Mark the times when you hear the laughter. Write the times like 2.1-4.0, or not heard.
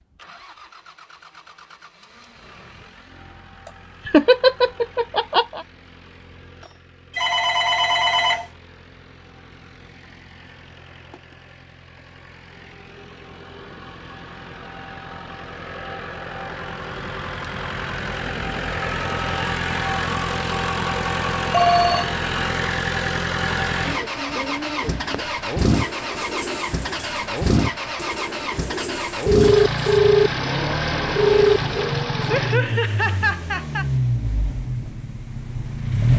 4.0-5.6, 32.3-33.9.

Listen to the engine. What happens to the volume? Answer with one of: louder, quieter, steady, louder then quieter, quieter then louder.
louder.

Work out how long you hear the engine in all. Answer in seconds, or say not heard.
36 s.